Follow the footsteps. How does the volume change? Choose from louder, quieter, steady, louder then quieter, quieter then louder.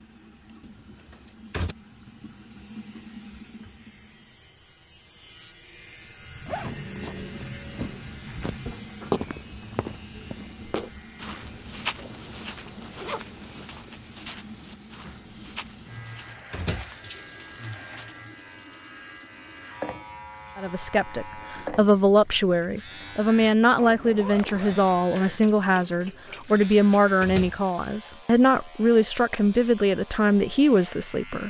quieter.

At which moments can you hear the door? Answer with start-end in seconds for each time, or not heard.
0.6-1.8, 16.5-16.9, 27.2-27.6.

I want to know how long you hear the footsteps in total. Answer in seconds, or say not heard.
10 s.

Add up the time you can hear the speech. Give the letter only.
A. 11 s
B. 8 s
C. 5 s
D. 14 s
A.